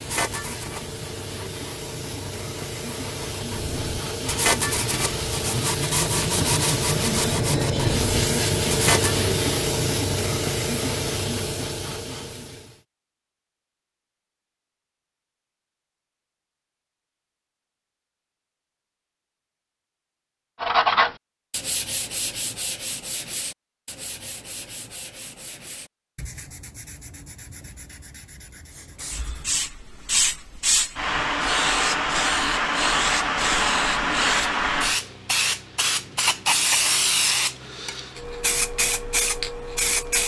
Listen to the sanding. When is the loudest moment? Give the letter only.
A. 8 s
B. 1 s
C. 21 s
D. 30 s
C.